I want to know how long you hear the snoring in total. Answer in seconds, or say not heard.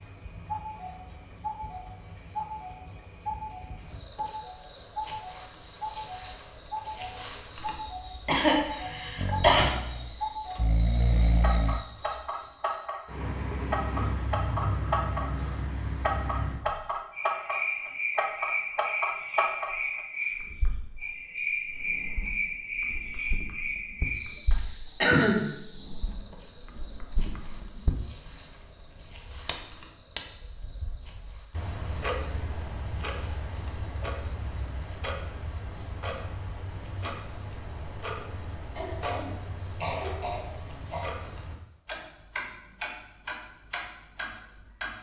3 s.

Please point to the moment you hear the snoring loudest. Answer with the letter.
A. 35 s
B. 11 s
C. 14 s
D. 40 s
B.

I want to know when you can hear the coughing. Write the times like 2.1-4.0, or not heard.
8.2-9.7, 24.5-25.5, 38.8-41.0.